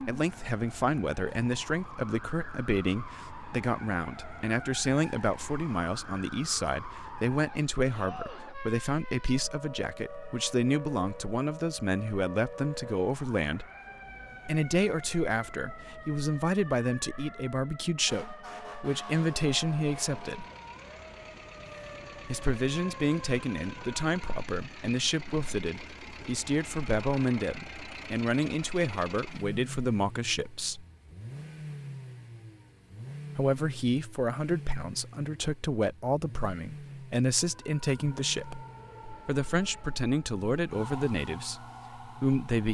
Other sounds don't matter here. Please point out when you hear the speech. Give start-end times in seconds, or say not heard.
0.0-13.7, 14.4-20.4, 22.2-30.9, 33.4-42.7.